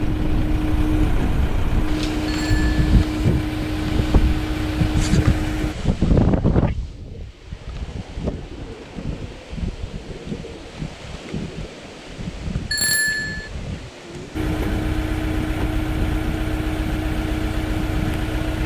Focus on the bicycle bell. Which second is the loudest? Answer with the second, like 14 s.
13 s.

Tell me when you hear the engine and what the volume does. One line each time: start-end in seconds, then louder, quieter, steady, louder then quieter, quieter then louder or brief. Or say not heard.
0.0-5.8 steady
14.3-18.6 steady.